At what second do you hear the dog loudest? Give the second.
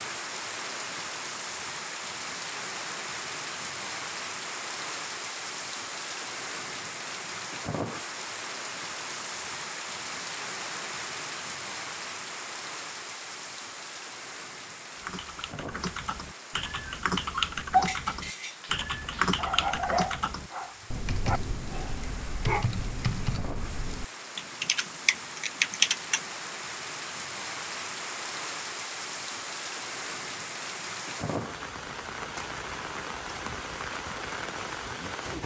18 s.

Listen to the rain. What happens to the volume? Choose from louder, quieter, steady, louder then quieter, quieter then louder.
quieter then louder.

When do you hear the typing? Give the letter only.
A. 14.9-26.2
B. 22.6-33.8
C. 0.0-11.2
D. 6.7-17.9
A.